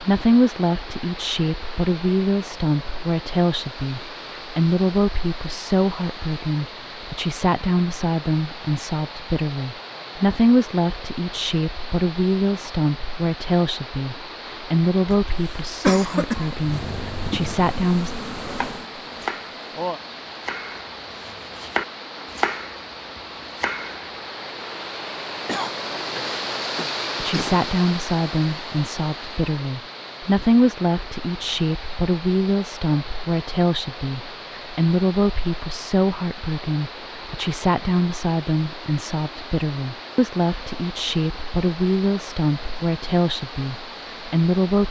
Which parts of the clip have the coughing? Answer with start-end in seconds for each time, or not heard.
15.1-16.6, 25.4-27.6.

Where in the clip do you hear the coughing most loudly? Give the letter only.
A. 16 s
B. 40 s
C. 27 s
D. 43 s
A.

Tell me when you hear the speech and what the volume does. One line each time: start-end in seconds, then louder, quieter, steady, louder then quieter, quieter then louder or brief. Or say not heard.
0.0-18.1 steady
27.1-44.8 steady.